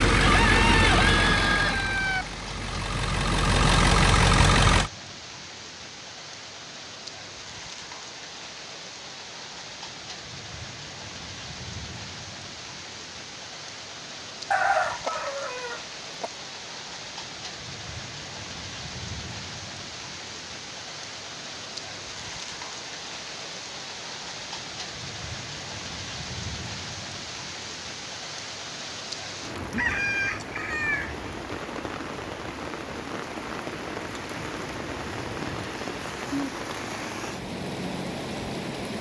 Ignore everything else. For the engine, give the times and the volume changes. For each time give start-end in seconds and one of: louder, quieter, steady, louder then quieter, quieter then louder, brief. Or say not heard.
0.0-4.9 quieter then louder.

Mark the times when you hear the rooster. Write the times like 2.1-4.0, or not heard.
0.2-2.2, 14.5-16.3, 29.7-31.1.